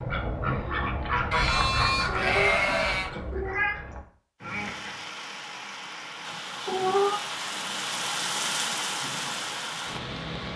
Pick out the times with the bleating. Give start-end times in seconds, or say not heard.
1.3-3.1.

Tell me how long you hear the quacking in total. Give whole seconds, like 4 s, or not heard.
5 s.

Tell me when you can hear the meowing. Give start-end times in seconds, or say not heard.
2.0-3.8, 6.7-7.2.